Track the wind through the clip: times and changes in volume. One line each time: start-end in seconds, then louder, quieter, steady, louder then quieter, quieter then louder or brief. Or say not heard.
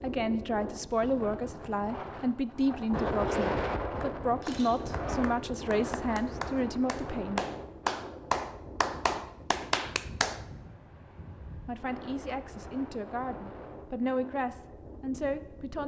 0.0-15.8 quieter.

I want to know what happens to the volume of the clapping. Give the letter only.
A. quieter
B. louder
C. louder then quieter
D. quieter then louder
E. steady
B.